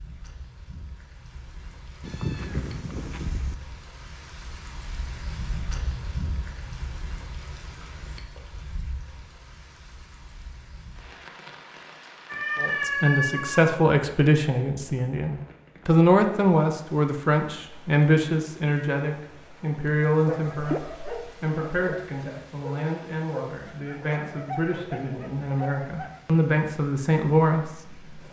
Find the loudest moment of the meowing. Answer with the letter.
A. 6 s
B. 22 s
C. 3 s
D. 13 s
D.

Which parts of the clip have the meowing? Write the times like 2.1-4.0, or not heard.
2.0-3.5, 12.2-13.8, 20.6-21.3.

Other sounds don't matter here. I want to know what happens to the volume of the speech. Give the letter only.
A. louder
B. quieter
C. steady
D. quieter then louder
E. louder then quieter
D.